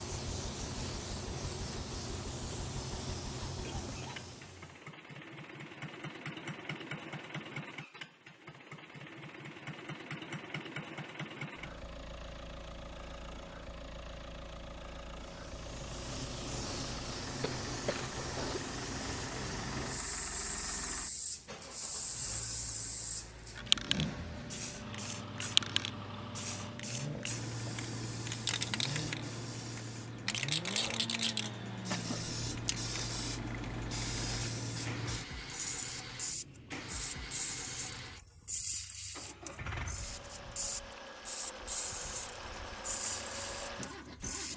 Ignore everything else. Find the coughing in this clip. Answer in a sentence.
You can hear the coughing from 3.6 to 4.3 s, from 17.4 to 18.6 s and from 31.4 to 32.2 s.